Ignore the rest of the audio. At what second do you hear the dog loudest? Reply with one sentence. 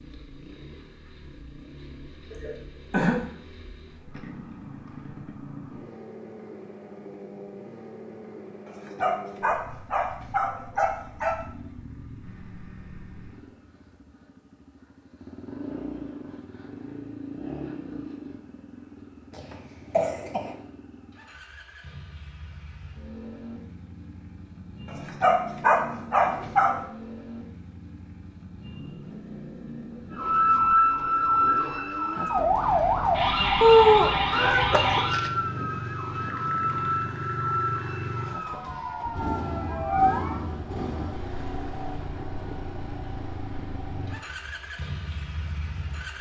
The volume of the dog peaks at 26 seconds.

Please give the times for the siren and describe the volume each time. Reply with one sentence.
You can hear the siren from 30.1 to 40.5 s, getting quieter.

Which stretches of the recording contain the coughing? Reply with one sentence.
You can hear the coughing from 2.3 to 3.2 s, from 19.3 to 20.6 s and from 33.6 to 35.0 s.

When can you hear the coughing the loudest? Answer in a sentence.
The volume of the coughing peaks at 34 seconds.